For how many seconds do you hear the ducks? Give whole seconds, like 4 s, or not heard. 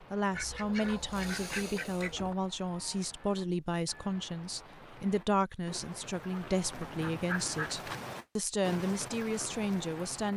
3 s.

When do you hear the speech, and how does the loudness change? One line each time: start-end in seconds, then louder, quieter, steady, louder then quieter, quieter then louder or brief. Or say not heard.
0.0-10.3 steady.